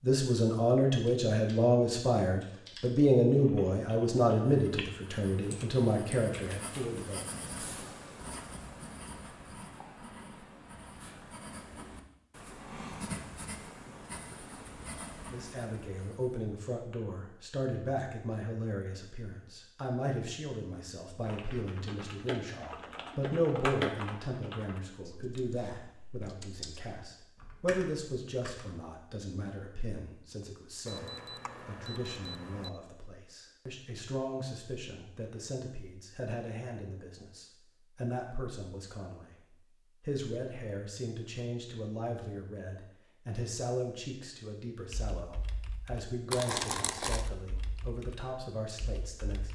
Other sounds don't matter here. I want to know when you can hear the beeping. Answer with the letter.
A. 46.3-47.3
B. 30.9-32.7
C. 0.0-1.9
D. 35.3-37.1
B.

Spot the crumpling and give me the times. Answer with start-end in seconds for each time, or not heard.
46.3-47.3.